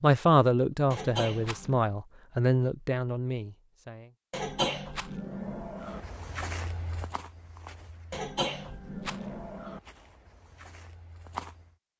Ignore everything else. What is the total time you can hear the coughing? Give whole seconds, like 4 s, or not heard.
4 s.